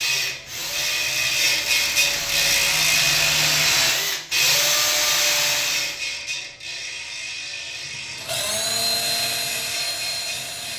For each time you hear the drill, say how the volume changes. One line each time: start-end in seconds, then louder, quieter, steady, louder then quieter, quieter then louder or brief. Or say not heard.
0.0-6.0 louder
7.7-10.7 brief.